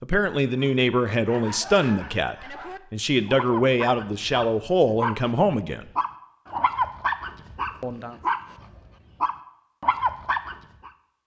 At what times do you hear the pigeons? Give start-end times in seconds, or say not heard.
not heard.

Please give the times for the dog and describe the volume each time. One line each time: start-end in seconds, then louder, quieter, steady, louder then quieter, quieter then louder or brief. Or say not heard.
0.6-10.9 louder.